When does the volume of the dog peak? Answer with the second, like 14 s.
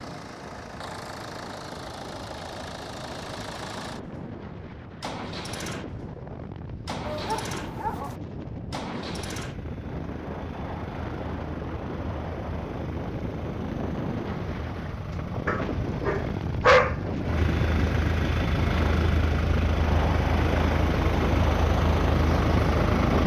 17 s.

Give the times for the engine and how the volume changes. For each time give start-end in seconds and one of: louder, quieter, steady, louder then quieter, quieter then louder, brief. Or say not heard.
0.0-23.2 quieter then louder.